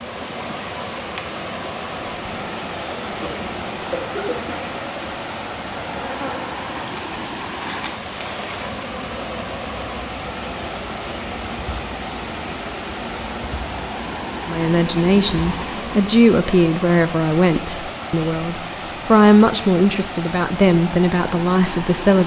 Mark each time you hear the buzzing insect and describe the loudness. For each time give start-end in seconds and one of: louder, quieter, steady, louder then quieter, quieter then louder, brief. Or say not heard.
0.0-16.1 steady.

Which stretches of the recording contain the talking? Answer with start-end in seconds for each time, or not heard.
14.4-22.2.